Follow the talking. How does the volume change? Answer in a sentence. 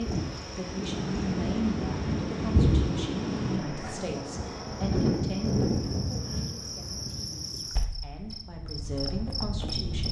The loudness of the talking goes down, then up.